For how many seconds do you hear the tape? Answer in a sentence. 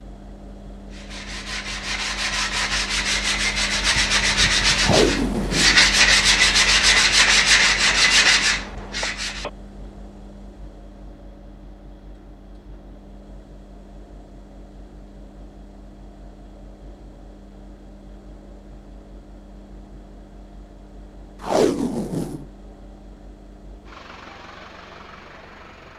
The tape can be heard for 2 seconds in total.